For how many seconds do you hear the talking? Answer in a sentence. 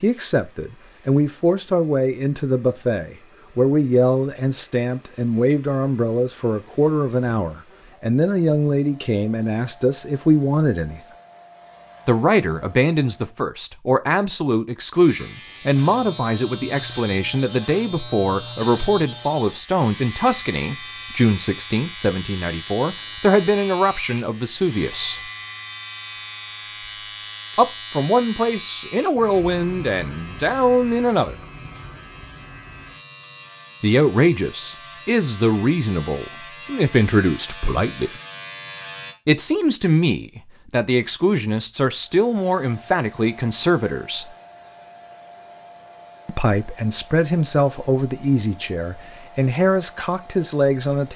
The talking can be heard for 42 seconds in total.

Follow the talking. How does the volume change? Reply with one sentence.
The loudness of the talking stays about the same.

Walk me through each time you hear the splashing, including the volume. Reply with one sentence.
The splashing can't be heard in this clip.